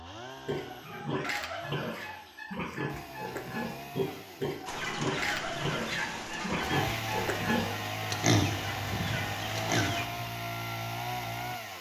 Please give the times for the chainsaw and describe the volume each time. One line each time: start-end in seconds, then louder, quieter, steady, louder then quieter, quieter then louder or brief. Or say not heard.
0.0-11.7 louder.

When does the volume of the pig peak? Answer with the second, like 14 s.
8 s.